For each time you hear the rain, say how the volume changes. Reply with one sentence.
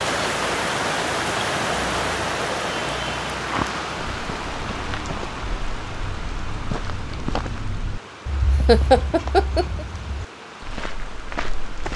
You can hear the rain from 0.0 to 11.9 s, getting quieter.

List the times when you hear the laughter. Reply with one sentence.
You can hear the laughter from 8.7 to 9.8 s.